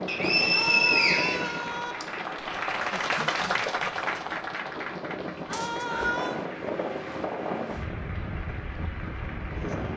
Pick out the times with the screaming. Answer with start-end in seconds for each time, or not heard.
0.5-1.9, 5.5-6.4.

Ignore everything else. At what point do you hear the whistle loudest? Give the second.
1 s.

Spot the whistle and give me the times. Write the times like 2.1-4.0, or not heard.
0.1-2.0, 5.5-6.2.